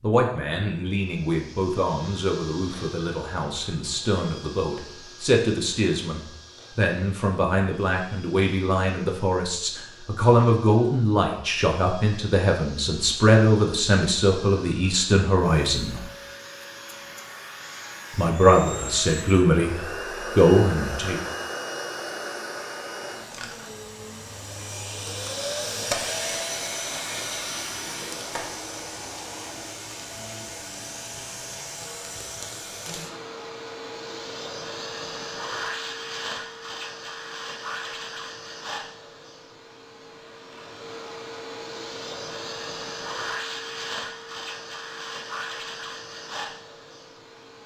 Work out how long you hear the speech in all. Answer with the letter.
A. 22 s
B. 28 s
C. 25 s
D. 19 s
D.